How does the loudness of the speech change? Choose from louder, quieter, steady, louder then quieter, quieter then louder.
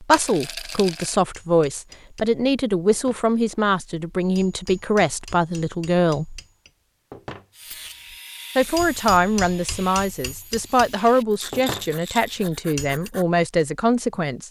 steady.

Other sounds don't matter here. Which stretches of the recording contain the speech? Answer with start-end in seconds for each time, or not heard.
0.0-6.4, 8.6-14.4.